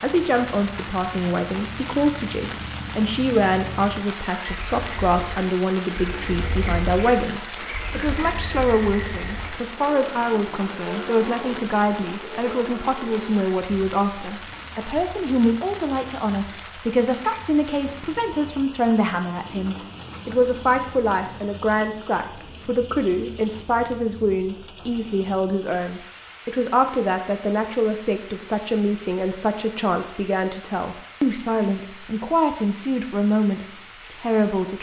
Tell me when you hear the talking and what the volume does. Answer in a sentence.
The talking can be heard from 0.0 to 34.7 s, at a steady volume.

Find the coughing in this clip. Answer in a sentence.
The coughing can't be heard in this clip.